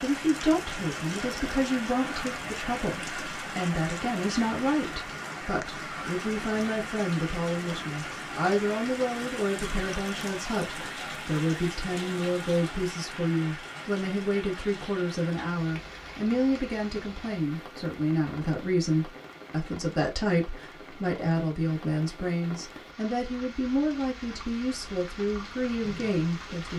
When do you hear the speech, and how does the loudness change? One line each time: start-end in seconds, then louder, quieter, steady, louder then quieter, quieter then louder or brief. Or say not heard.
0.0-26.7 steady.